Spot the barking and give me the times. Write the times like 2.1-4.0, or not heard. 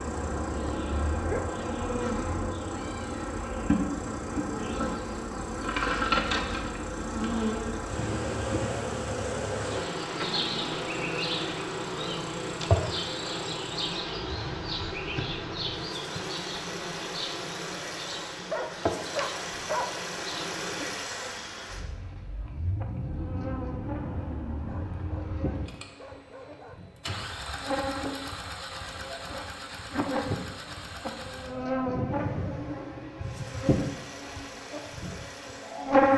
0.7-1.4, 18.5-19.9, 24.6-26.9.